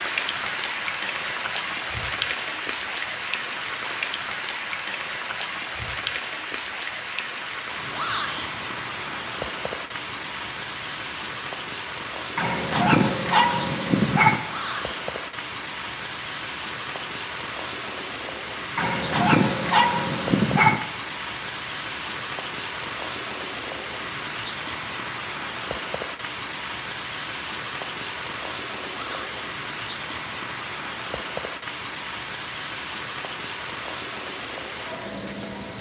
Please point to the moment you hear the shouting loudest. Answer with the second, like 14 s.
8 s.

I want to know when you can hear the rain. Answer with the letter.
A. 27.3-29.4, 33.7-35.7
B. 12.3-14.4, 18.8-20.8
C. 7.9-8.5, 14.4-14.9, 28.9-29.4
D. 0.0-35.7
D.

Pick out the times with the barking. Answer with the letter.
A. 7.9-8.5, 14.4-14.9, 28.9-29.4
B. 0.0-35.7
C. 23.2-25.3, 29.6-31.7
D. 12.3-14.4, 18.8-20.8
D.